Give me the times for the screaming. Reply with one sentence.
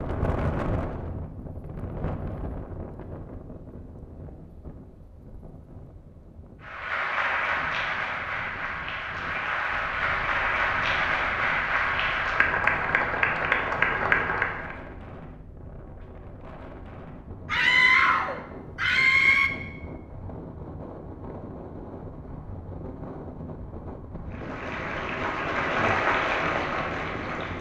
You can hear the screaming from 17.5 to 19.5 s.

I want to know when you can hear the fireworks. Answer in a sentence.
The fireworks can't be heard in this clip.